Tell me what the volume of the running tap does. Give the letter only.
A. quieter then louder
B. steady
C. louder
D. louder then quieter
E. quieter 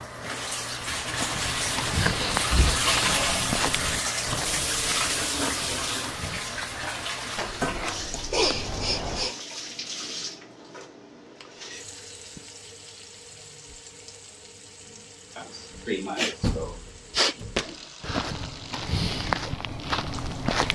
E.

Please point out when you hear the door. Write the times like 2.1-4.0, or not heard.
2.3-2.8, 7.3-9.3, 16.4-17.6.